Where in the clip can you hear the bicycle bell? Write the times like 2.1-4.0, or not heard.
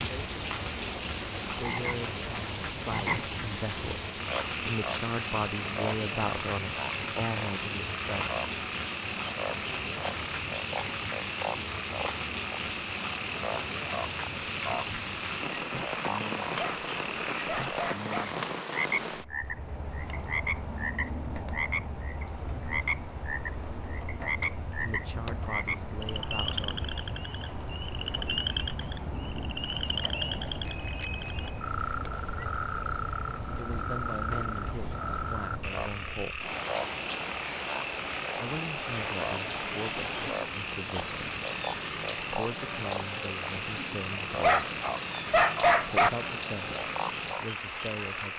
30.6-31.7.